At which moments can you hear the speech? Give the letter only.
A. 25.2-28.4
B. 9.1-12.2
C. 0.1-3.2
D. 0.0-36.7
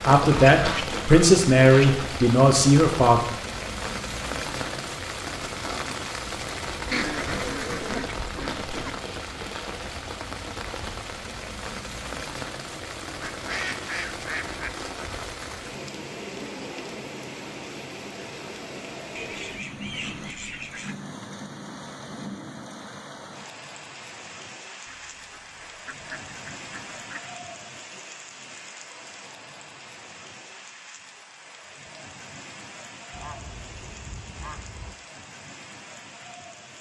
C.